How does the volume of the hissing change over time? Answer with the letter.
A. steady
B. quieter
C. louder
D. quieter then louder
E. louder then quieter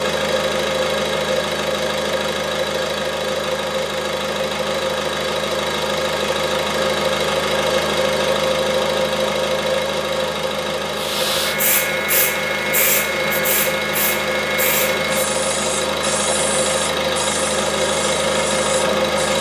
B.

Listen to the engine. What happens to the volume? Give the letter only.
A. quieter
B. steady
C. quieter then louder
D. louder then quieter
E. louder
B.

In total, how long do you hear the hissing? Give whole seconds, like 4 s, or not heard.
8 s.